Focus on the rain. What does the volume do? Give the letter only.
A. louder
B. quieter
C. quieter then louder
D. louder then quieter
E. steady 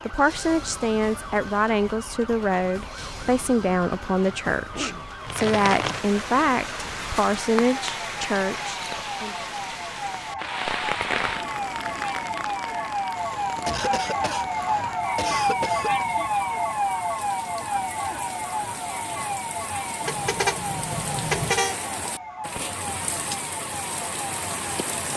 C.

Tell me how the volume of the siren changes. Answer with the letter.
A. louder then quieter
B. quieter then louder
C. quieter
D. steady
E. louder
A.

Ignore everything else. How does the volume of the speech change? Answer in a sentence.
The volume of the speech stays about the same.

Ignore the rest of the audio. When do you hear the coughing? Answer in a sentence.
You can hear the coughing from 4.5 to 5.1 s and from 13.7 to 16.1 s.